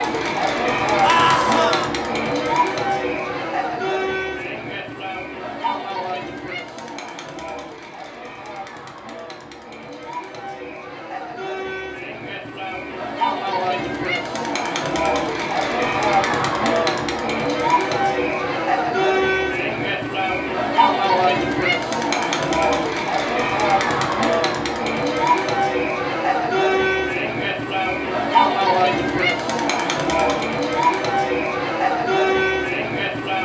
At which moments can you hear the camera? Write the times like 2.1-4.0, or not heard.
not heard.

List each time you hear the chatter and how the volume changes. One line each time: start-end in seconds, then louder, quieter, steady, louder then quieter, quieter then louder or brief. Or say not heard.
0.0-33.3 quieter then louder.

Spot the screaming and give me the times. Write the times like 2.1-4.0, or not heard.
1.0-1.9.